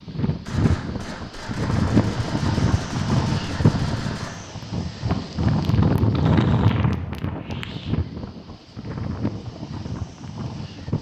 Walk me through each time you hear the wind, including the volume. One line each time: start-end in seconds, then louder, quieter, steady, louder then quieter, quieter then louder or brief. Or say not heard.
0.0-10.9 quieter.